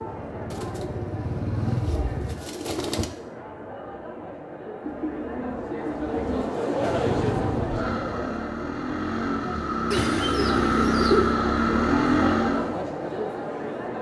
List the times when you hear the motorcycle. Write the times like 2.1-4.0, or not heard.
0.0-2.4, 6.8-12.8.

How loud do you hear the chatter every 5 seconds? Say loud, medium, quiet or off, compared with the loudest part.
medium, loud, loud.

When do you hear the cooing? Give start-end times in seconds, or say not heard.
0.5-3.1, 4.8-6.5, 9.9-11.4.